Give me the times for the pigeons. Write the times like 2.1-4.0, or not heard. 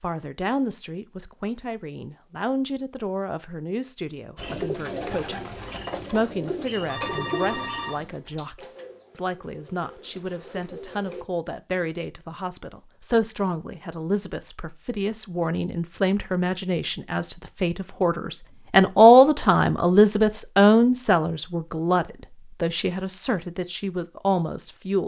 4.3-11.2.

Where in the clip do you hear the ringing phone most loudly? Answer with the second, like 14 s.
7 s.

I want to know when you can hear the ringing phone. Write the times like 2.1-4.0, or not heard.
6.8-8.4.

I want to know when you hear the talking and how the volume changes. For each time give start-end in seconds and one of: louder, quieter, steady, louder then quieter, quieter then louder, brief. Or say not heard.
0.0-25.0 louder.